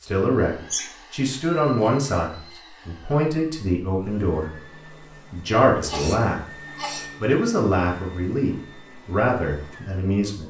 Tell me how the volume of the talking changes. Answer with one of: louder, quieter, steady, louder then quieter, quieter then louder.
steady.